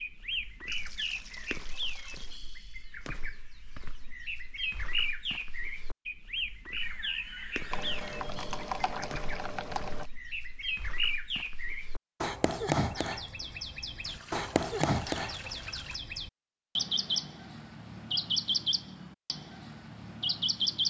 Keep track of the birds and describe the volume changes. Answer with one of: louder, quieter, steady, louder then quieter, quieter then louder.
louder.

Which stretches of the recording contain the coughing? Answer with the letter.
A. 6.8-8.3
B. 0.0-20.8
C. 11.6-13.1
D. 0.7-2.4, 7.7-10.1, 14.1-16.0
A.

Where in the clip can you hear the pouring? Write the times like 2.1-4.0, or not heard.
0.7-2.4, 7.7-10.1, 14.1-16.0.